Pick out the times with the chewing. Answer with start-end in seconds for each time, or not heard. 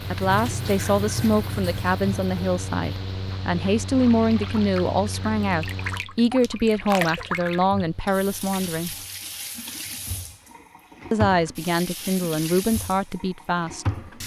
not heard.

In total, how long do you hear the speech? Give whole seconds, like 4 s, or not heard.
12 s.